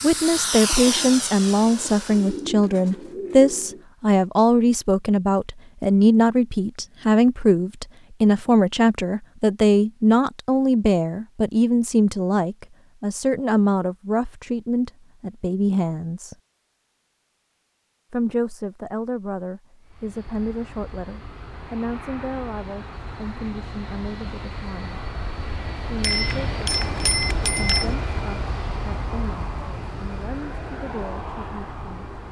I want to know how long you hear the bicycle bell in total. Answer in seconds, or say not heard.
2 s.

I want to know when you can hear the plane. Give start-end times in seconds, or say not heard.
0.0-2.5, 19.8-32.2.